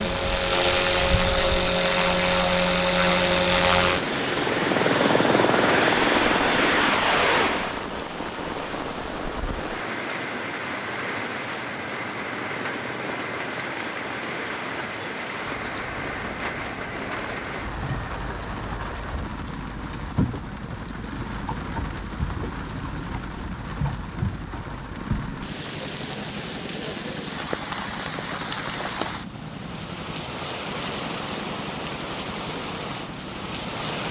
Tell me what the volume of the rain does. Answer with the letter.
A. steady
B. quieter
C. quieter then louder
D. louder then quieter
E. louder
A.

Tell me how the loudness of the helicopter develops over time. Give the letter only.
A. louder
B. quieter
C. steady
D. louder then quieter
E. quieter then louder
B.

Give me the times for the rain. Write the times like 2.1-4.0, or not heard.
0.0-34.0.